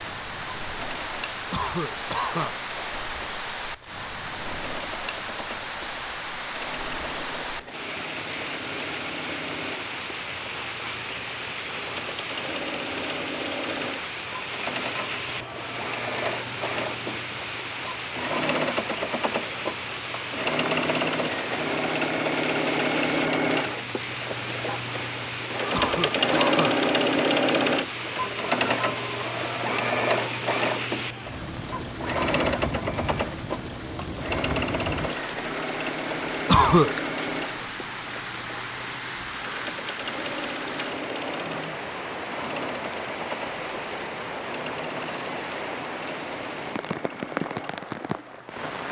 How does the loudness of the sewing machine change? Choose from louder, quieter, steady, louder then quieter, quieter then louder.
louder then quieter.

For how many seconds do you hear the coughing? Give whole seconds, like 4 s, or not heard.
3 s.